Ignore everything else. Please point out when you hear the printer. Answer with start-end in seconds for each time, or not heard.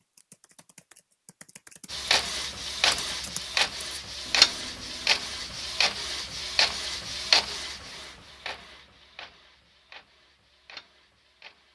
1.9-11.7.